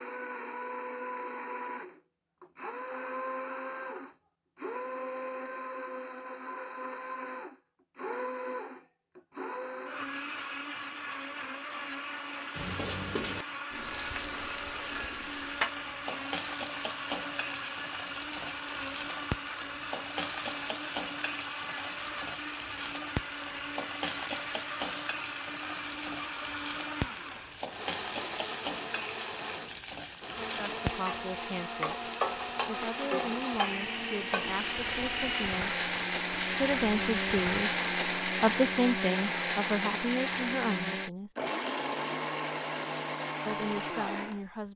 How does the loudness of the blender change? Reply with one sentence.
The loudness of the blender goes up.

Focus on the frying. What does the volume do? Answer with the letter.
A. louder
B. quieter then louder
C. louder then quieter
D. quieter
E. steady
E.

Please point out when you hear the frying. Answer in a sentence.
The frying can be heard from 12.6 to 37.6 s.